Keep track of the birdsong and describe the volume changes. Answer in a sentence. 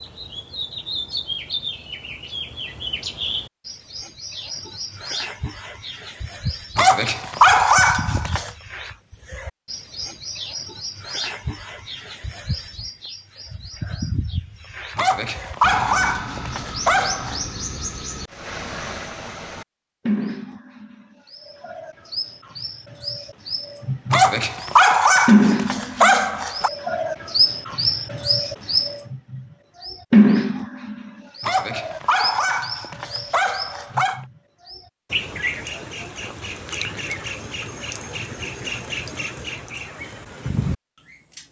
The volume of the birdsong goes up, then down.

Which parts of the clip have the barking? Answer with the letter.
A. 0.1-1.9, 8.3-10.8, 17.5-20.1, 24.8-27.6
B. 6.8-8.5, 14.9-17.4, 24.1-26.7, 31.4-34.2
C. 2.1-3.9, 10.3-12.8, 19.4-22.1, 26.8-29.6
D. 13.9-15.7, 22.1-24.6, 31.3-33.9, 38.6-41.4
B.